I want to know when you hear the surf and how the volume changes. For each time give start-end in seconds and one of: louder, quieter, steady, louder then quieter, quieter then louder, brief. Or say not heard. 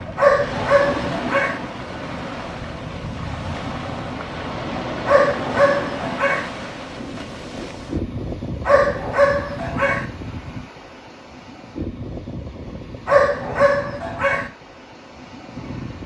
0.0-16.0 quieter.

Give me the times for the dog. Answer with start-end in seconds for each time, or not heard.
0.1-1.6, 5.0-6.5, 8.7-10.1, 13.1-14.5.